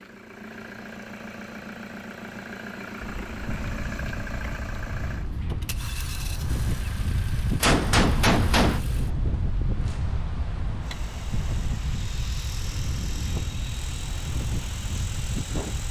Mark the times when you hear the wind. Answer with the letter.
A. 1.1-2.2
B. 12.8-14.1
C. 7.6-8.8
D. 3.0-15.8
D.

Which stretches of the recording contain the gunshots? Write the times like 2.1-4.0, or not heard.
7.6-8.8.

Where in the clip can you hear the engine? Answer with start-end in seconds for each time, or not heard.
0.0-15.8.